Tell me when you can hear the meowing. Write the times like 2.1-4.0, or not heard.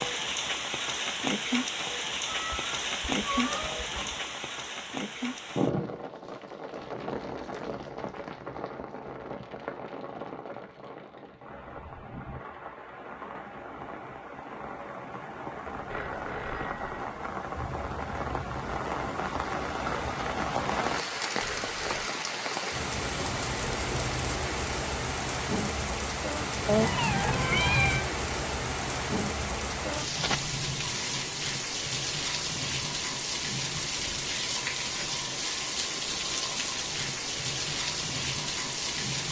2.2-4.2, 26.6-28.1.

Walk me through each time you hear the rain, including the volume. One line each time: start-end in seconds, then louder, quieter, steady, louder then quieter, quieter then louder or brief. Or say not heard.
0.0-39.2 quieter then louder.